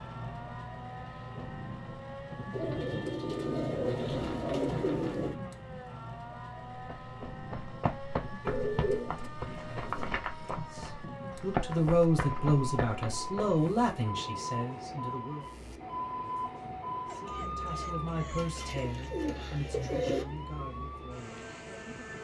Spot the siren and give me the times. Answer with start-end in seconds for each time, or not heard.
0.0-22.1.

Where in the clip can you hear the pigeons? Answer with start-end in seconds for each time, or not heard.
2.5-5.3, 8.4-10.1, 18.4-20.2.